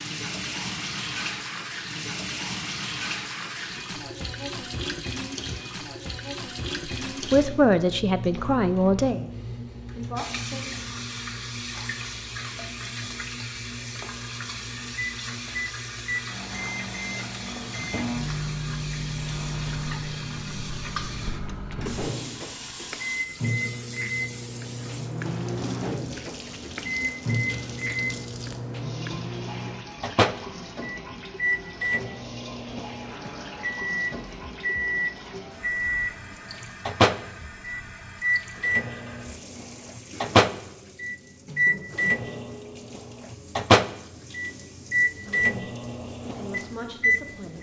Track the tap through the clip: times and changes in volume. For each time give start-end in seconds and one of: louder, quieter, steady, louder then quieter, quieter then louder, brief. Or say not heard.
0.0-47.5 quieter.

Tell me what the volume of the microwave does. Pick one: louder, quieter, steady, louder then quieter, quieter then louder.
louder.